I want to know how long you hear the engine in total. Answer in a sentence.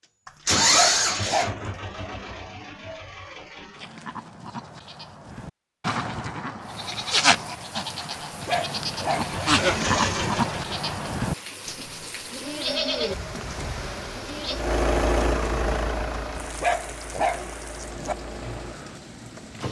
The engine can be heard for 11 seconds in total.